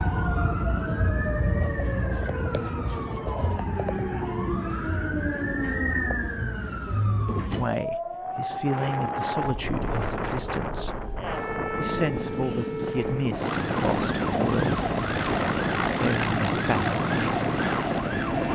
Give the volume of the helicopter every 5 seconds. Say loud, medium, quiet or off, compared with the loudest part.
off, off, loud, loud.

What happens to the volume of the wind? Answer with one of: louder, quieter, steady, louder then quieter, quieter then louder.
steady.